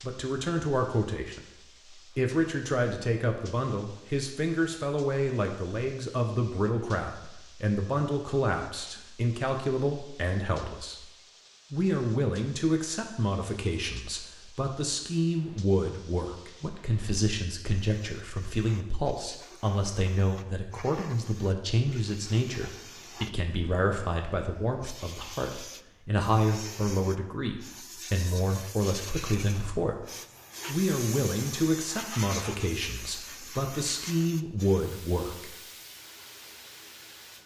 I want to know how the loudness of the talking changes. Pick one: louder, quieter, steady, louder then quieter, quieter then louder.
steady.